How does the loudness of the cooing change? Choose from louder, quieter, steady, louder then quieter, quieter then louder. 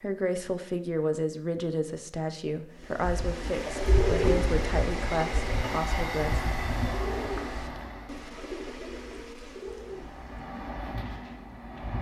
quieter.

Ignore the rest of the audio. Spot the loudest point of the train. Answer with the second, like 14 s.
6 s.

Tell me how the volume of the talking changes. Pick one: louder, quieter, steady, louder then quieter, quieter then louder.
steady.